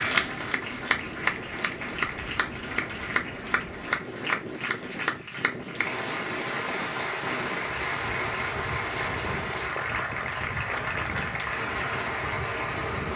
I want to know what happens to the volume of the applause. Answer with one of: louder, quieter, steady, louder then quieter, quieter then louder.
steady.